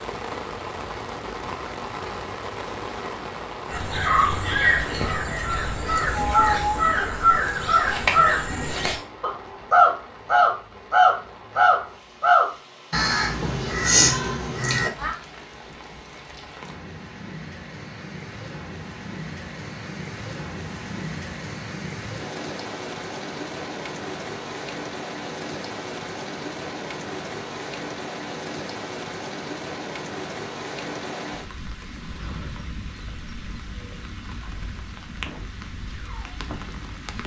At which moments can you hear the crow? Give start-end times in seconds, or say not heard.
3.7-15.2.